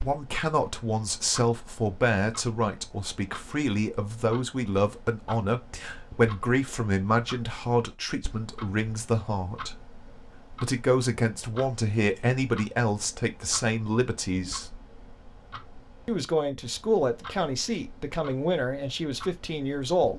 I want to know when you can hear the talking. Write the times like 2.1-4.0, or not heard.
0.0-14.7, 16.1-20.1.